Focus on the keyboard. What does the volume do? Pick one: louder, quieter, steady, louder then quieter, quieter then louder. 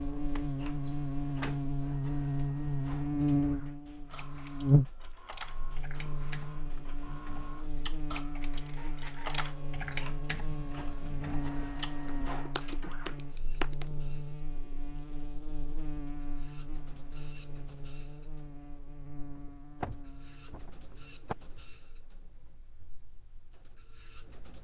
louder.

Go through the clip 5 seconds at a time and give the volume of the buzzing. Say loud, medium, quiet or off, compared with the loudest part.
loud, quiet, medium, quiet, quiet.